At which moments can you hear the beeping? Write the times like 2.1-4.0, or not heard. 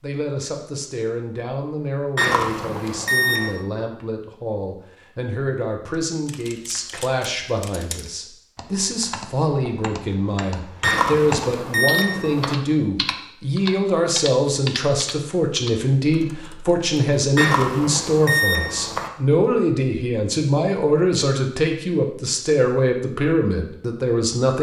2.1-3.6, 10.8-12.6, 17.4-19.1.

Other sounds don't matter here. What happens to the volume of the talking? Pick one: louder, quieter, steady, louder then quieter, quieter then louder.
louder.